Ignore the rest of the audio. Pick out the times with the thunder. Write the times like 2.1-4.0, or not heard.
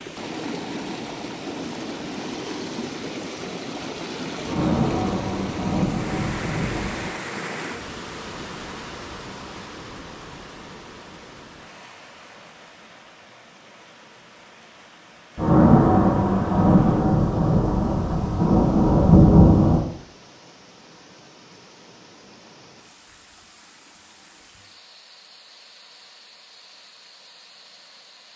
4.5-7.0, 15.3-19.9.